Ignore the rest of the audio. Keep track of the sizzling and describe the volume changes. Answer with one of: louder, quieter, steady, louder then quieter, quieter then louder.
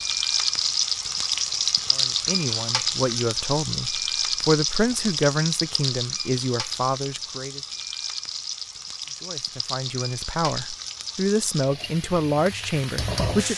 quieter.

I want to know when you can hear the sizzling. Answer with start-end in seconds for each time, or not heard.
0.0-13.5.